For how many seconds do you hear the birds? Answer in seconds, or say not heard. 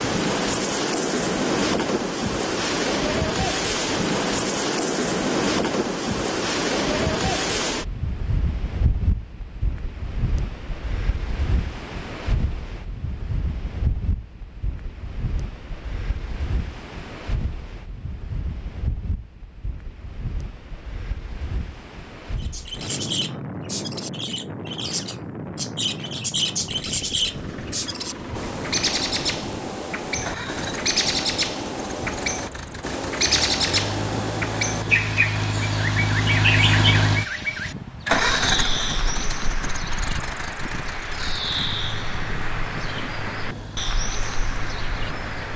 23 s.